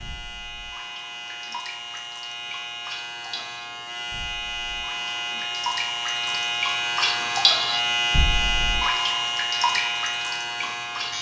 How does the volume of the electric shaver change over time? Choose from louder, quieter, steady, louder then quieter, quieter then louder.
louder.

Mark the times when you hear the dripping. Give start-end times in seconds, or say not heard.
0.0-11.1.